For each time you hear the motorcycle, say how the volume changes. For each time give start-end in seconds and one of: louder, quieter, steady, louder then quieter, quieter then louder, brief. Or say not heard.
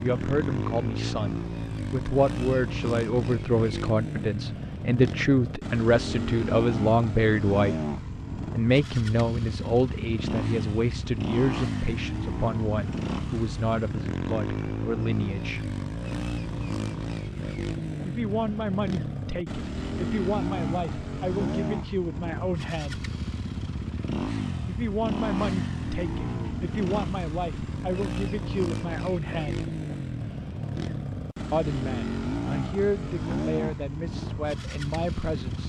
0.0-35.6 steady.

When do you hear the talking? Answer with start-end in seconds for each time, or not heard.
0.0-7.8, 8.6-15.7, 18.1-23.1, 24.6-29.7, 31.5-35.6.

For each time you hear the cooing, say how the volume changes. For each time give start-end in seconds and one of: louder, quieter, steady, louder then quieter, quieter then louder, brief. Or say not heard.
not heard.